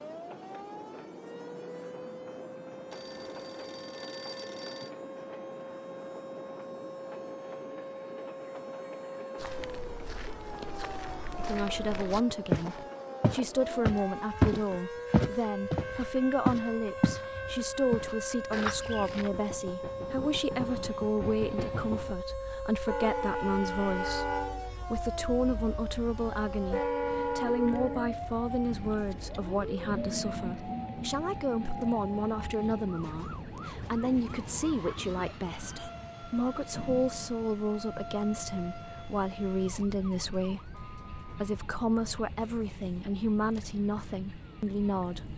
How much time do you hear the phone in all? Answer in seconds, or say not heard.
2 s.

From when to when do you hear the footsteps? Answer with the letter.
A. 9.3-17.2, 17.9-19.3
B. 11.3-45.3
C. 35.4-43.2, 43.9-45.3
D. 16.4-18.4
A.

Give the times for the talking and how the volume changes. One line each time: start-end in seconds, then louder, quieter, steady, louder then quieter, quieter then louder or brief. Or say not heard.
11.3-45.3 steady.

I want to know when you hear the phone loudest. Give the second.
4 s.